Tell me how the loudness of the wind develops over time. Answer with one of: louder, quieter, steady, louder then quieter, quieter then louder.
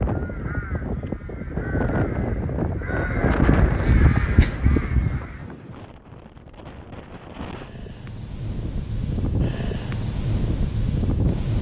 quieter then louder.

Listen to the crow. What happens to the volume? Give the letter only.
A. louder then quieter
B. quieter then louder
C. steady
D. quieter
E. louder
E.